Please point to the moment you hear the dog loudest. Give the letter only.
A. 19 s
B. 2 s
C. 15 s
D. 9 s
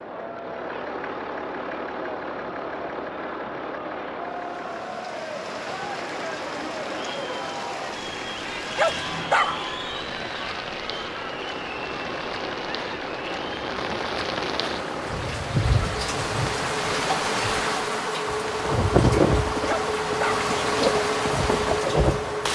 D.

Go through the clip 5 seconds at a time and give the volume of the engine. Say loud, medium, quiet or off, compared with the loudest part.
medium, medium, medium, loud, loud.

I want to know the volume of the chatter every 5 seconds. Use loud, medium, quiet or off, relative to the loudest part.
loud, loud, loud, off, off.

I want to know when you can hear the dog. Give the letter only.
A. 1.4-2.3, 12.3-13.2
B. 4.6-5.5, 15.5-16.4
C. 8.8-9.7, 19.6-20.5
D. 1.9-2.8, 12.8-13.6
C.